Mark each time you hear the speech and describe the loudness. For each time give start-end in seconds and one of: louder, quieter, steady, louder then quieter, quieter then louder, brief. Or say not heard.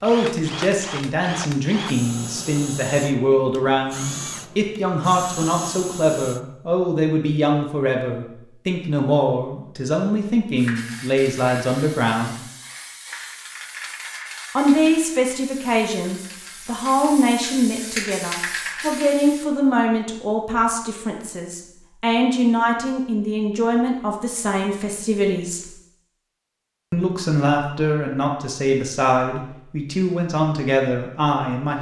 0.0-12.4 steady
14.6-25.7 steady
26.9-31.7 steady.